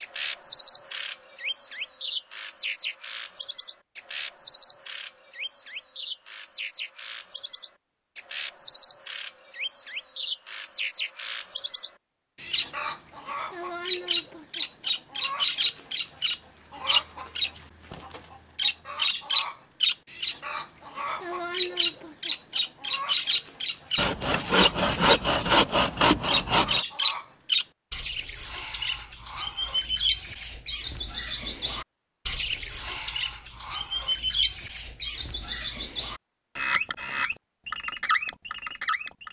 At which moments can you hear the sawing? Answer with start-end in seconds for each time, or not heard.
23.9-26.9.